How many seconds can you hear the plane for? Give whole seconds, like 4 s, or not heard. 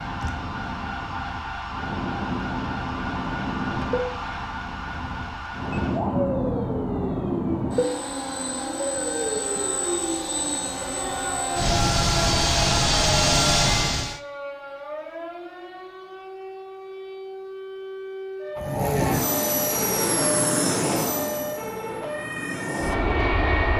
19 s.